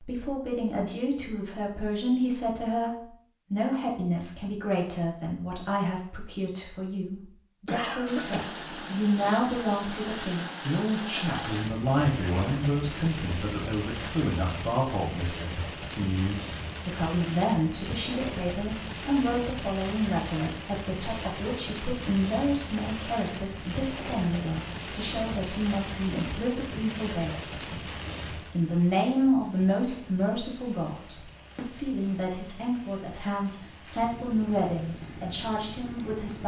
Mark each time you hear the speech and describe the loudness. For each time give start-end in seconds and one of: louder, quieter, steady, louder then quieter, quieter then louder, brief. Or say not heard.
0.0-27.6 steady
28.3-36.4 quieter.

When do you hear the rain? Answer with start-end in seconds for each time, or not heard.
8.1-36.4.